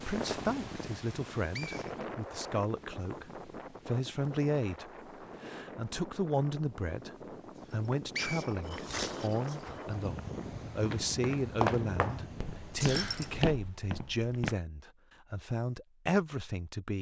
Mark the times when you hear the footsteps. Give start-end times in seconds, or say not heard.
8.7-14.6.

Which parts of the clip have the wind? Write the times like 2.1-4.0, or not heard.
0.0-13.6.